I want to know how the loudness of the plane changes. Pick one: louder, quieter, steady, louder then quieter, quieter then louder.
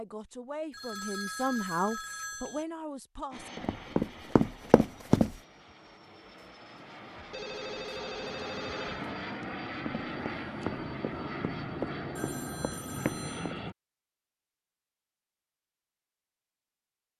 louder.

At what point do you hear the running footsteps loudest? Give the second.
5 s.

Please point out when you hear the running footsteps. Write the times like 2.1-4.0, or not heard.
3.5-5.3, 9.8-13.6.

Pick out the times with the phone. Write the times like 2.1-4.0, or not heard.
0.7-2.6, 7.3-9.1, 12.2-13.6.